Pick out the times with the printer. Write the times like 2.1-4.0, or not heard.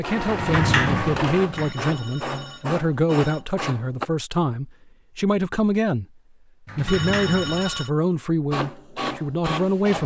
0.0-4.1, 8.5-10.0.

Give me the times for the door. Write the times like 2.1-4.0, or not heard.
0.2-1.8, 6.7-7.8.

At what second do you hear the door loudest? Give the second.
1 s.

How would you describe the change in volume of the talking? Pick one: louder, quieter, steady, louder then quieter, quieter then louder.
steady.